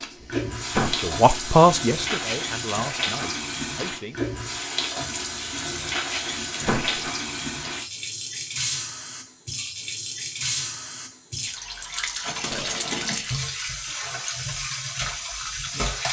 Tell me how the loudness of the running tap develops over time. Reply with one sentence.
The volume of the running tap stays about the same.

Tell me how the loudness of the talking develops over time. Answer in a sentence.
The volume of the talking goes up, then down.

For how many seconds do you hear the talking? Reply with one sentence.
The talking can be heard for 4 seconds in total.